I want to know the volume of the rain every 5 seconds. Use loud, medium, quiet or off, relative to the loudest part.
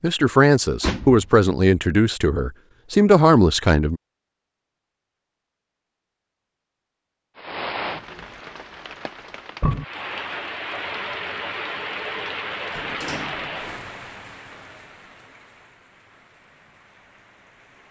off, loud, loud, quiet.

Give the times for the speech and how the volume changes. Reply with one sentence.
The speech can be heard from 0.0 to 4.0 s, getting quieter then louder.